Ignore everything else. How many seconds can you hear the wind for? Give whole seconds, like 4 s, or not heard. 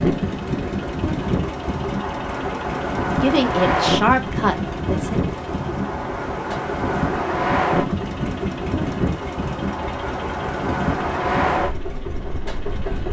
13 s.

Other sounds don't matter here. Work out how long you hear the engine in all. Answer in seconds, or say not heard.
13 s.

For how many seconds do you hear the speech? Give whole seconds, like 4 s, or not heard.
2 s.